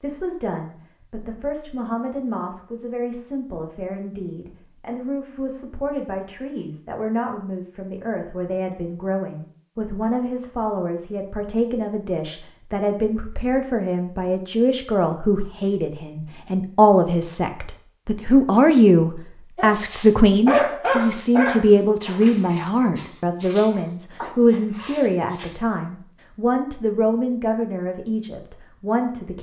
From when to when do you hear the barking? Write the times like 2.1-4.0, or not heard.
19.6-25.6.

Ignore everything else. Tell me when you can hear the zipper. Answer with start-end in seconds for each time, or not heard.
not heard.